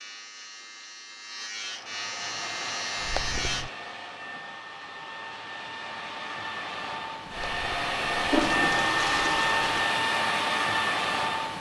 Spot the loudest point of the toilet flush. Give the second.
9 s.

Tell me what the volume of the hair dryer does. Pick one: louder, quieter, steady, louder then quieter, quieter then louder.
louder.